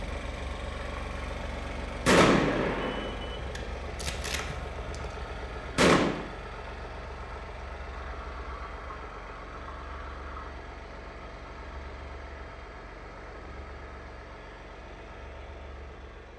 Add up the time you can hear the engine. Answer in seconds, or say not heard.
16 s.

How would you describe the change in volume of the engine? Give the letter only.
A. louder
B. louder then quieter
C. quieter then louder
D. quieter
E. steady
D.